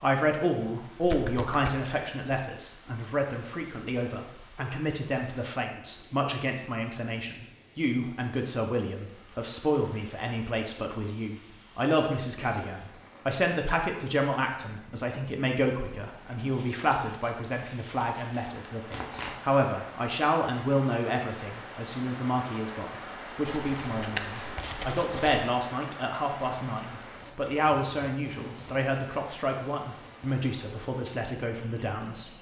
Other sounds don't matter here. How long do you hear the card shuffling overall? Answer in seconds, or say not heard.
3 s.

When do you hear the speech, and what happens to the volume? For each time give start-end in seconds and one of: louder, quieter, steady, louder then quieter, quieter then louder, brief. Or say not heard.
0.0-32.3 steady.